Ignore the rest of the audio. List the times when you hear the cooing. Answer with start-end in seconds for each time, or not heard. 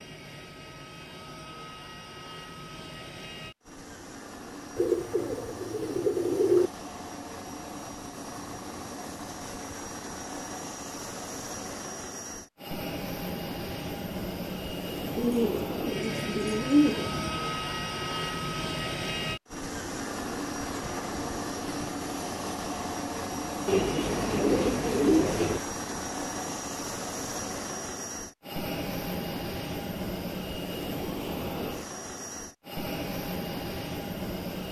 4.8-6.7, 15.2-17.4, 23.6-25.6.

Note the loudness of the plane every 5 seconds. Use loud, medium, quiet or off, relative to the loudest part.
medium, medium, loud, loud, loud, loud, loud.